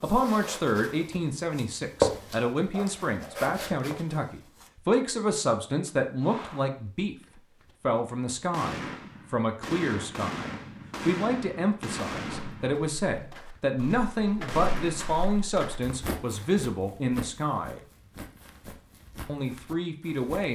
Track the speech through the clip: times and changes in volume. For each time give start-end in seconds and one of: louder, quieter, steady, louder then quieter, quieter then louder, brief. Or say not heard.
0.0-17.8 steady
19.2-20.4 brief.